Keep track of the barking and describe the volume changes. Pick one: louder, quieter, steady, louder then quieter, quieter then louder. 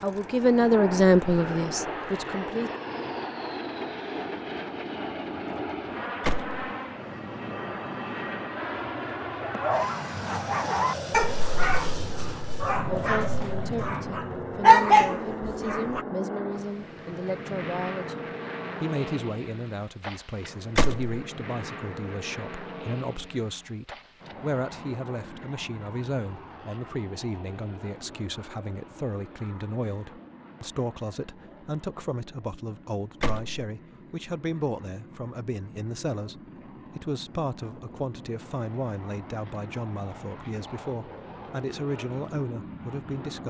quieter then louder.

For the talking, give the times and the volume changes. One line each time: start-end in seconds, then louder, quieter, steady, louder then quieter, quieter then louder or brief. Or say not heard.
0.0-2.7 brief
12.8-43.4 steady.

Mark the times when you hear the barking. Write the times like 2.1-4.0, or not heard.
9.4-16.1.